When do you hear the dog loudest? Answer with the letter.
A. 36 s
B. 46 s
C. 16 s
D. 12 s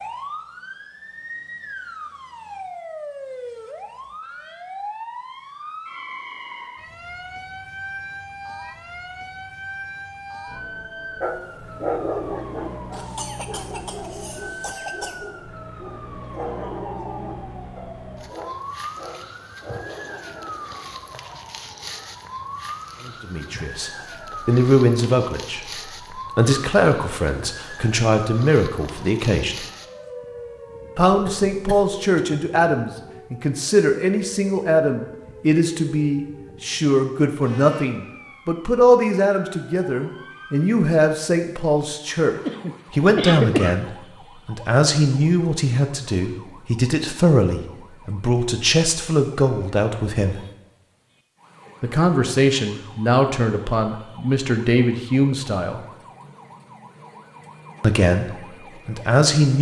D.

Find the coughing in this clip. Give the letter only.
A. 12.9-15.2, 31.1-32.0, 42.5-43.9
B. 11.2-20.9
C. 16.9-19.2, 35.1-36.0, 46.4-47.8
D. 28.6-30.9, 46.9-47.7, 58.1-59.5
A.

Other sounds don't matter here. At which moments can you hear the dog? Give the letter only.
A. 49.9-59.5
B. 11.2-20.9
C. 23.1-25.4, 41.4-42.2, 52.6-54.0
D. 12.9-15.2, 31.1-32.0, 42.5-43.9
B.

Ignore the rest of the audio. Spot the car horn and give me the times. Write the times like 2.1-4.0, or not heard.
not heard.